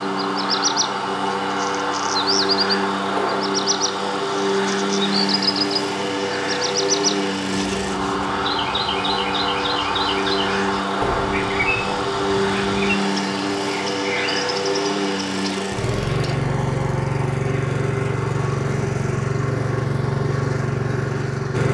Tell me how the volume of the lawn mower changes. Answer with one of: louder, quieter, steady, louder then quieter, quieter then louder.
steady.